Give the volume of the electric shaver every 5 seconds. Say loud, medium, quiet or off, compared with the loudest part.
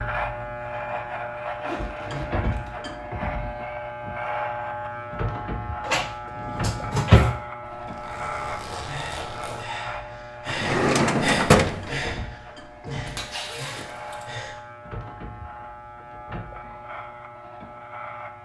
loud, loud, medium, medium.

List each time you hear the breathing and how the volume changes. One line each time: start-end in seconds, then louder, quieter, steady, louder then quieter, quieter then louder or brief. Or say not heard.
8.7-14.6 louder then quieter.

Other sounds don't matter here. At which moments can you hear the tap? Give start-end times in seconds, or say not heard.
not heard.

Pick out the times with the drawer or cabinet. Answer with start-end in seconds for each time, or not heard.
5.8-7.3, 10.4-11.9.